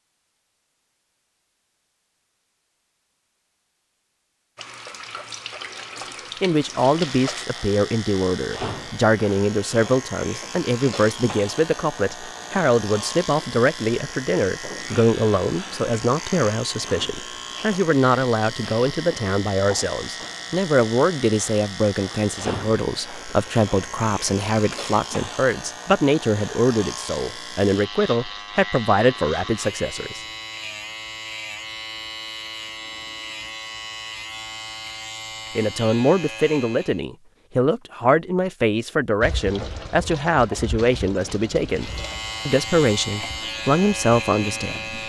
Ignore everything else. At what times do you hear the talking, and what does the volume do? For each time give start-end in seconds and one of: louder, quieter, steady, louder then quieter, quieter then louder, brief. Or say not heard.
6.4-30.2 steady
35.5-45.0 steady.